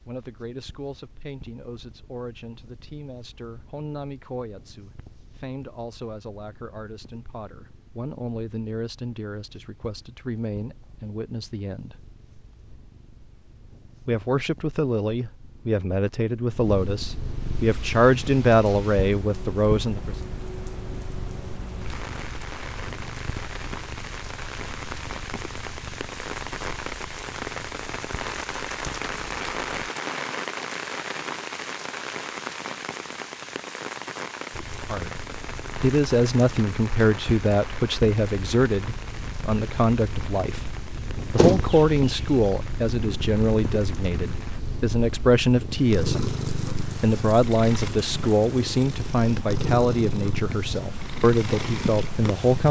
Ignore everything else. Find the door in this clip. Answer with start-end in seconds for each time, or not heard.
41.4-42.2.